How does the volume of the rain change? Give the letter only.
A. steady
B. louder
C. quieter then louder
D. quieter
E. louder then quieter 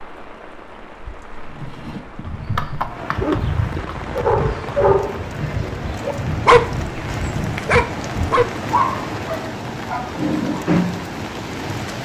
B.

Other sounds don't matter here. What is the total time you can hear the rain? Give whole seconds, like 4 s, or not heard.
12 s.